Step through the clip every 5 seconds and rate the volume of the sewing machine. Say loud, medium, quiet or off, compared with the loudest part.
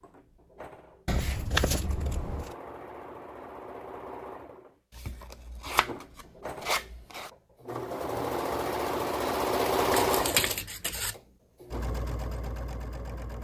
quiet, loud, loud.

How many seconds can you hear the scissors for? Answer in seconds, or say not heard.
5 s.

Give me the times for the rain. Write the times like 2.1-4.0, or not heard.
not heard.